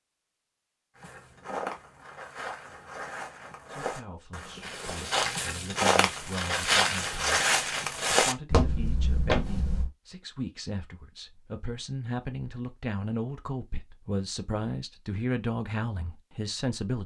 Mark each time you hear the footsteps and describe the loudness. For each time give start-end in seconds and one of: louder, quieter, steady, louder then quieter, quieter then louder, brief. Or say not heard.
0.9-9.9 louder.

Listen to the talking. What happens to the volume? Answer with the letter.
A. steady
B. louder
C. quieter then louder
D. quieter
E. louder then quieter
B.